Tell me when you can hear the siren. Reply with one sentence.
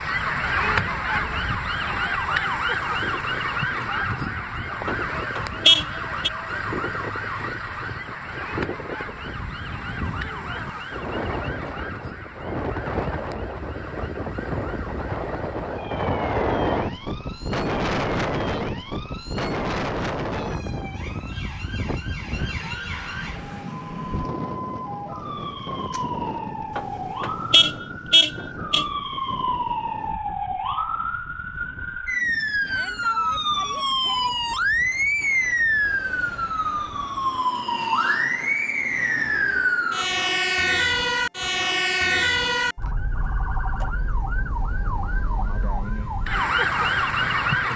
You can hear the siren from 0.0 to 47.7 s.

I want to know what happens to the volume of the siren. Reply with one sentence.
The volume of the siren goes down, then up.